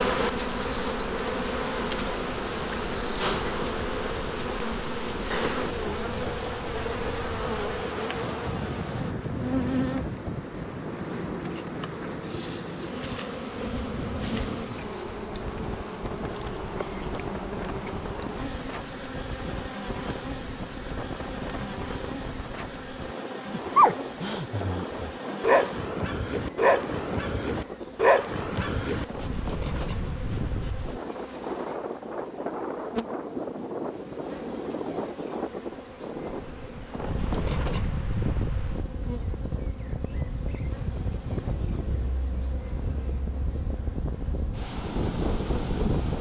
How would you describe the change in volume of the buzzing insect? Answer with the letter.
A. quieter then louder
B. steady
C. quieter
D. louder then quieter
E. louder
C.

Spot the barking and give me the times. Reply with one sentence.
The barking can be heard from 23.5 to 29.1 s.